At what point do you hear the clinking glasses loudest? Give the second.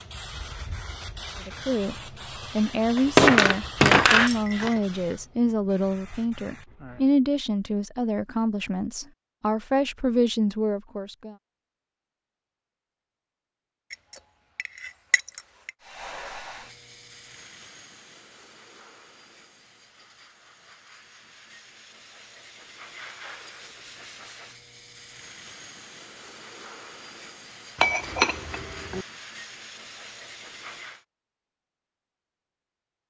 3 s.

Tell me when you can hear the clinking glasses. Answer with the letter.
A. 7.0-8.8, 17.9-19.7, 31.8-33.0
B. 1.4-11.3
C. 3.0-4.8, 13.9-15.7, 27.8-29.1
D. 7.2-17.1
C.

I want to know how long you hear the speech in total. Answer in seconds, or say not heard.
10 s.